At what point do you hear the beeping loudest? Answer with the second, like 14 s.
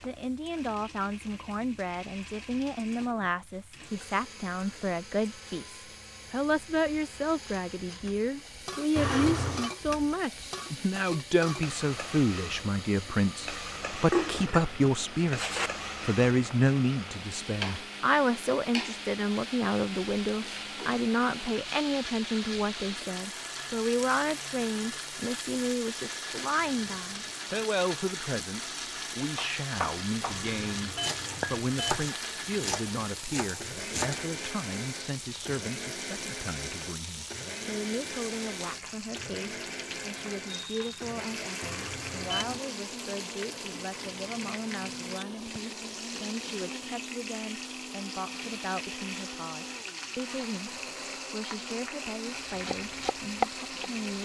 9 s.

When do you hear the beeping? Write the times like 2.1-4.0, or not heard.
8.9-9.7, 30.2-32.1, 41.6-42.6.